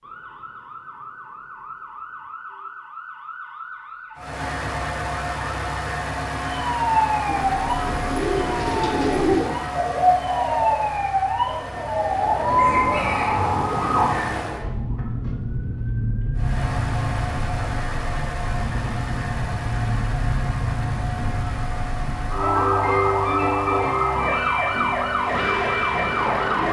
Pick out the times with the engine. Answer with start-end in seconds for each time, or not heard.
4.2-14.7, 16.4-26.6.